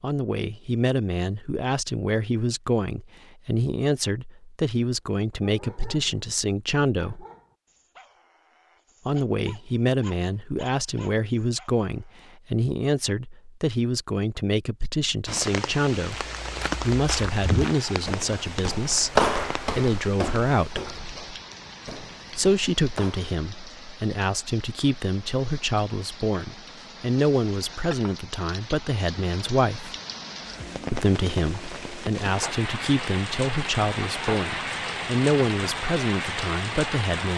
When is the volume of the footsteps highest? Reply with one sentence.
The loudest moment of the footsteps is at 19 seconds.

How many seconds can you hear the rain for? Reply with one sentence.
The rain can be heard for 22 seconds in total.